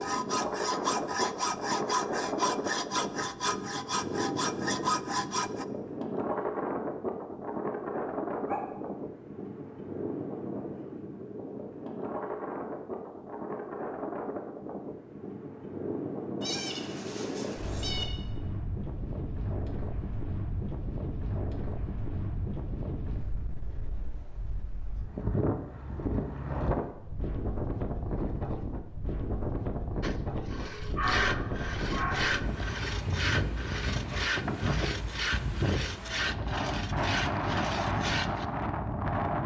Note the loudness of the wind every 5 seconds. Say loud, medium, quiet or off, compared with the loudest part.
loud, loud, medium, medium, medium, loud, loud, loud.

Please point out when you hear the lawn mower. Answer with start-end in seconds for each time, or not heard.
not heard.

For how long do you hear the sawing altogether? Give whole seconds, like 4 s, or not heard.
14 s.